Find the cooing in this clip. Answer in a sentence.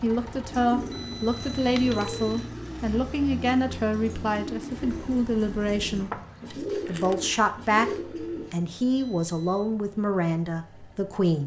The cooing can be heard from 0.5 to 8.6 s.